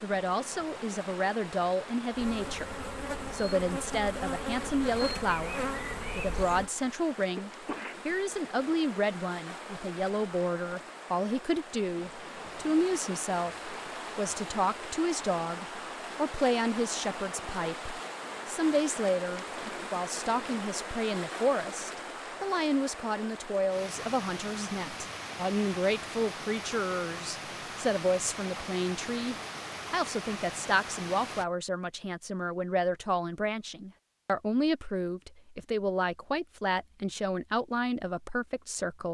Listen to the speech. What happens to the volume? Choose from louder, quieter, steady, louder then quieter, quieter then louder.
steady.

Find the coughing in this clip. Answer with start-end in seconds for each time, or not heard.
7.3-8.0.